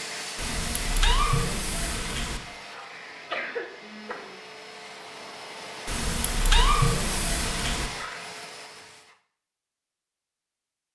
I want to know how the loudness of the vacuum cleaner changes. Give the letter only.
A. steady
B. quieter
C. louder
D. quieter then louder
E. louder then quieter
D.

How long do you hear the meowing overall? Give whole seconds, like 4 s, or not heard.
4 s.